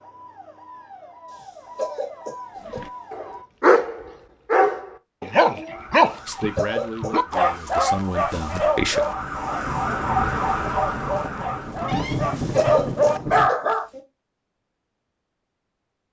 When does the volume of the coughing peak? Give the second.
13 s.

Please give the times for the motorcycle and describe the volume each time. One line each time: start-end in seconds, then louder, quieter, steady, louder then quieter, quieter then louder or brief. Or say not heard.
not heard.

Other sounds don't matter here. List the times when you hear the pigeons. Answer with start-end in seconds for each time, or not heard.
not heard.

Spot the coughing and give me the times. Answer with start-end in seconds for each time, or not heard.
1.3-3.2, 6.1-7.1, 12.1-14.0.